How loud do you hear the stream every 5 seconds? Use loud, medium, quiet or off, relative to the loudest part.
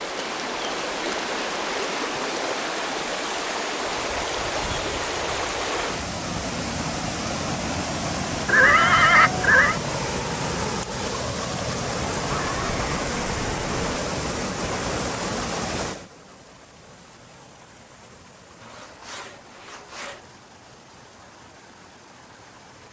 loud, loud, loud, medium, quiet.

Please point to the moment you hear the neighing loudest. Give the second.
9 s.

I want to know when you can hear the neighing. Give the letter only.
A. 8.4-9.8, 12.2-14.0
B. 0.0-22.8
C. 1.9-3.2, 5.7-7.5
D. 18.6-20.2
A.